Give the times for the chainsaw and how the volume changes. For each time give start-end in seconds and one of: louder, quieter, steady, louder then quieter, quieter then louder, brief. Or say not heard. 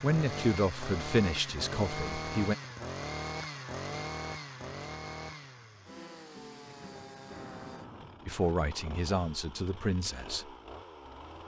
0.0-11.4 quieter.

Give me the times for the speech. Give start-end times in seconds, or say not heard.
0.0-2.5, 8.2-10.5.